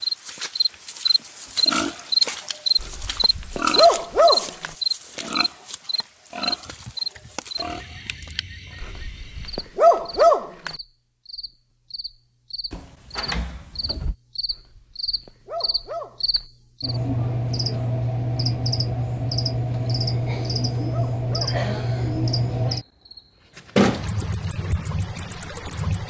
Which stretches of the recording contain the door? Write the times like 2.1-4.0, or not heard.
12.7-14.2.